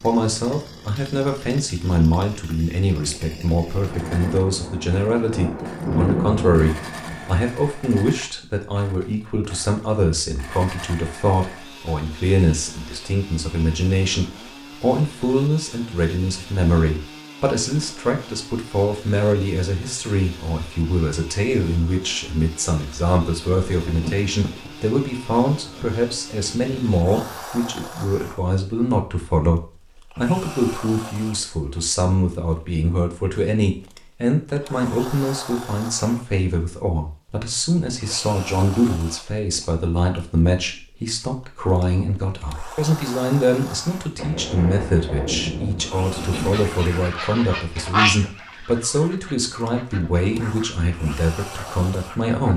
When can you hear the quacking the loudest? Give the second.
48 s.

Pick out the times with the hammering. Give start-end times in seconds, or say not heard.
not heard.